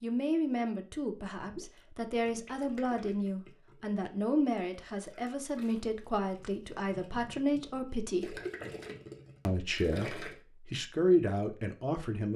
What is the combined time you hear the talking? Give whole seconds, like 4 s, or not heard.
11 s.